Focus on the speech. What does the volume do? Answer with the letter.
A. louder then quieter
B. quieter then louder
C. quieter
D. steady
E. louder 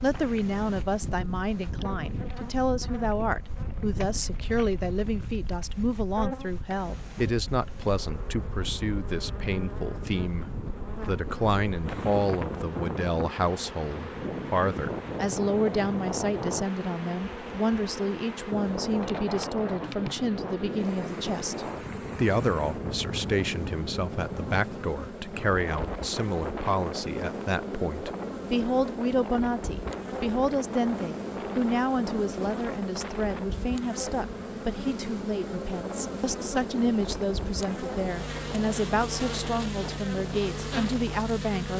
D.